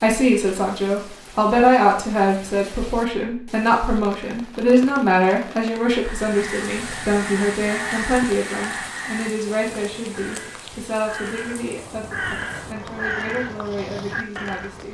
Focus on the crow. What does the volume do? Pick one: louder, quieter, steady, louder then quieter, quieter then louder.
quieter then louder.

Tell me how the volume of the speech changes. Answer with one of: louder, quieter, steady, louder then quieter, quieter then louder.
quieter.